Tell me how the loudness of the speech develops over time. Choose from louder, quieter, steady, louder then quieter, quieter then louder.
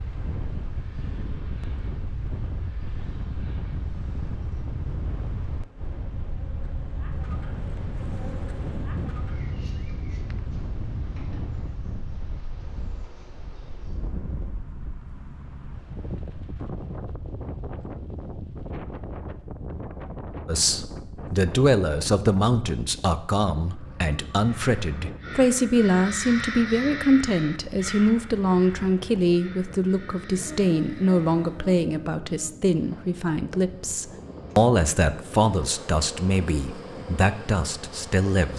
steady.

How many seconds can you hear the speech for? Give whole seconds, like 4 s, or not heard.
18 s.